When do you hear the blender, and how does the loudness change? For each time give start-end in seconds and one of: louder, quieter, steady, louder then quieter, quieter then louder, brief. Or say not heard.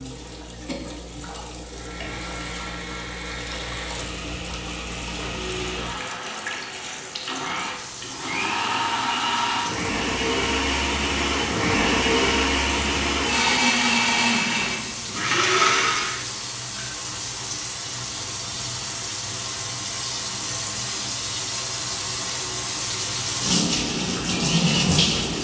1.6-16.2 louder.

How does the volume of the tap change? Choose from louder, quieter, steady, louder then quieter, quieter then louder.
louder.